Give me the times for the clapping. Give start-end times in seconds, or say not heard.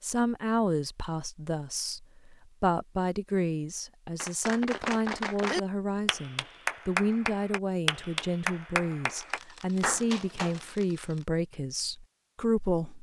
4.2-10.7.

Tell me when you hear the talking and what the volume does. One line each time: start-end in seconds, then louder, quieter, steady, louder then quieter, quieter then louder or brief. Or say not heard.
0.0-12.9 steady.